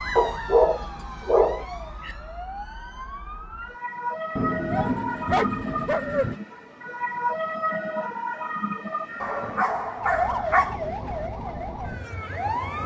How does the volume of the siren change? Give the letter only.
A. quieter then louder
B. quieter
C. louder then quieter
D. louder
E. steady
D.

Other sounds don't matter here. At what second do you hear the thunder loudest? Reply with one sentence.
The volume of the thunder peaks at 5 seconds.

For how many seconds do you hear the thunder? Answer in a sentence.
The thunder can be heard for 2 seconds in total.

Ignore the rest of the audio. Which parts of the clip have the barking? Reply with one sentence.
You can hear the barking from 0.1 to 2.1 s, from 4.7 to 6.3 s and from 9.2 to 10.8 s.